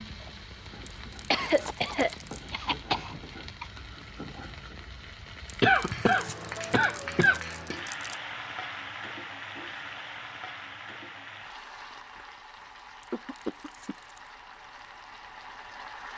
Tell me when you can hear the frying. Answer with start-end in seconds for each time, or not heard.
0.0-16.1.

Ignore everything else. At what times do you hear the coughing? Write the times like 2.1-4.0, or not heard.
1.3-3.6, 5.6-7.8, 13.1-14.0.